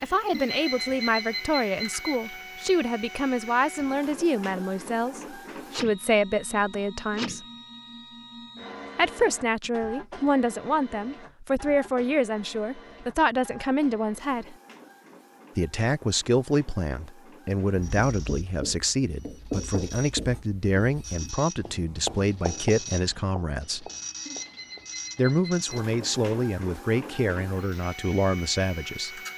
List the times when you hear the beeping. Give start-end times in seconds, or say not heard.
0.3-2.2, 24.2-25.6.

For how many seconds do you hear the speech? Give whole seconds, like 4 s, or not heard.
25 s.